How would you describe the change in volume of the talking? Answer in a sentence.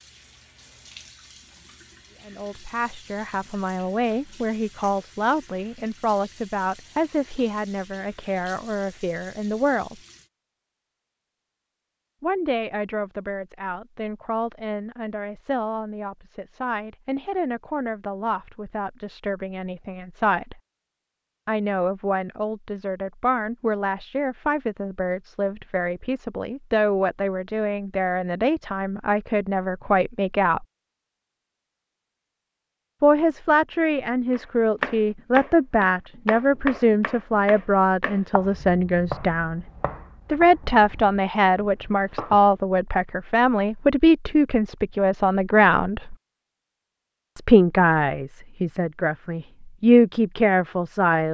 The volume of the talking goes up.